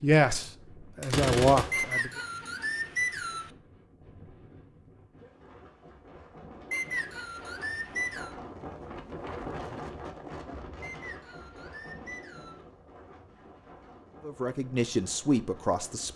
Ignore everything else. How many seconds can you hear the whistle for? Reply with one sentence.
You can hear the whistle for 5 seconds altogether.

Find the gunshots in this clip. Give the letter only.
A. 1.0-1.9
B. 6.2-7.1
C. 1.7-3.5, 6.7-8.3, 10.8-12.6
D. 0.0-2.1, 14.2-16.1
A.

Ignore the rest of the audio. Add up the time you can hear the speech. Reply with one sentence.
The speech can be heard for 4 seconds in total.